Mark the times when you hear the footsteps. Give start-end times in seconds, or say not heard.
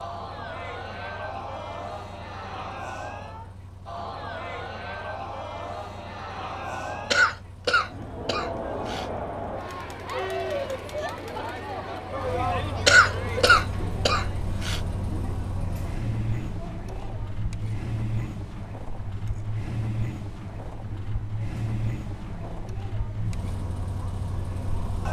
not heard.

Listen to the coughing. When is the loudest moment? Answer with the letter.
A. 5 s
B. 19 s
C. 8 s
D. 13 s
D.